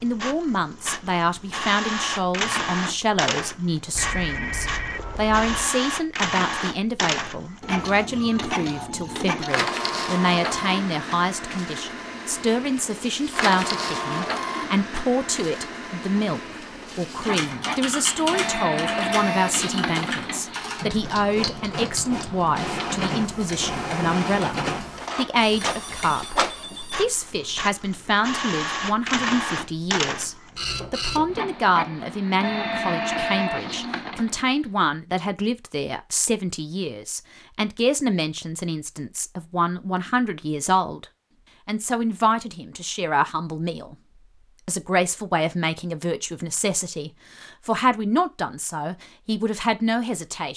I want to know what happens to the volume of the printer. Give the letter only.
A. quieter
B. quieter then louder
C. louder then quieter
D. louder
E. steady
E.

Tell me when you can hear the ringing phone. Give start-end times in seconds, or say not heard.
4.0-5.7, 25.6-27.1.